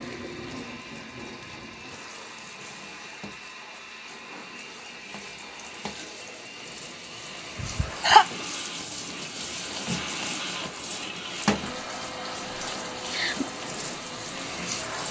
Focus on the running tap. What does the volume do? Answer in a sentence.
The loudness of the running tap goes up.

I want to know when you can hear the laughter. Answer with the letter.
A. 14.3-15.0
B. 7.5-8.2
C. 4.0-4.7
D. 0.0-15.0
B.